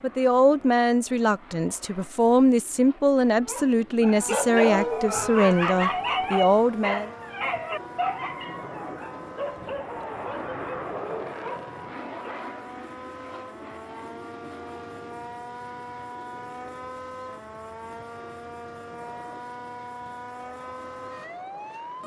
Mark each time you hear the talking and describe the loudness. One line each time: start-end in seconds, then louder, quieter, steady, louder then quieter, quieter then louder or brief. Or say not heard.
0.0-7.1 steady.